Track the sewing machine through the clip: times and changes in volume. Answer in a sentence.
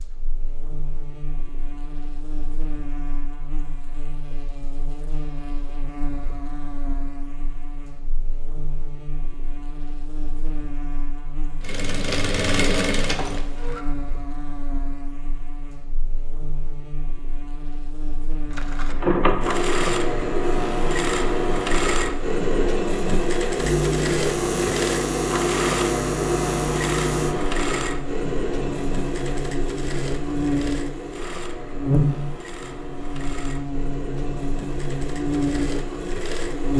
The sewing machine can be heard briefly from 11.6 to 13.8 s; and from 18.5 to 36.7 s, getting quieter.